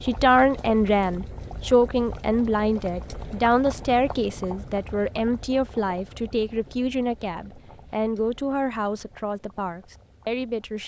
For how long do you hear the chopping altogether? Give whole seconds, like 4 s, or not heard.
not heard.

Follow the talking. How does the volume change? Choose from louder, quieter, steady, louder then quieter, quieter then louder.
quieter.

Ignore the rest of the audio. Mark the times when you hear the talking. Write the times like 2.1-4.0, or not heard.
0.0-10.8.